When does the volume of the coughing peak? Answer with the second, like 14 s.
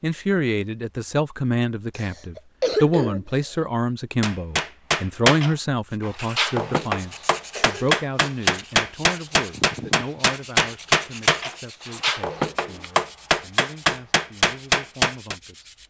3 s.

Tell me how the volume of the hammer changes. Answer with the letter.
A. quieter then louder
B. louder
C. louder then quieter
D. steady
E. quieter
D.